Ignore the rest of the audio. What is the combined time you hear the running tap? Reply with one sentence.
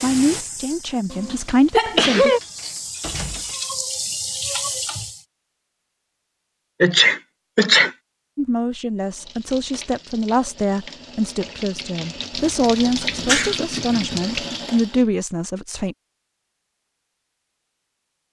You can hear the running tap for 11 seconds altogether.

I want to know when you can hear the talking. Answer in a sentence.
You can hear the talking from 0.0 to 2.3 s and from 8.3 to 15.9 s.